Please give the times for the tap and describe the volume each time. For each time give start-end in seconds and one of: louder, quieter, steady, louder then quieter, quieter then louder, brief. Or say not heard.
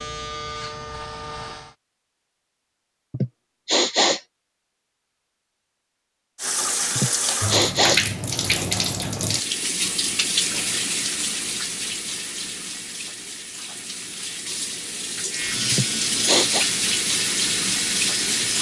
6.3-18.5 quieter then louder.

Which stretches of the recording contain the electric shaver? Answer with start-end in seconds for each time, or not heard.
0.0-1.8, 15.3-18.5.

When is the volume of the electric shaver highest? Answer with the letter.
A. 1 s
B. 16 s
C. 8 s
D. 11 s
B.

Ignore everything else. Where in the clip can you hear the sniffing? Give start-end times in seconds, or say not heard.
3.1-4.2, 7.0-8.0, 15.7-16.6.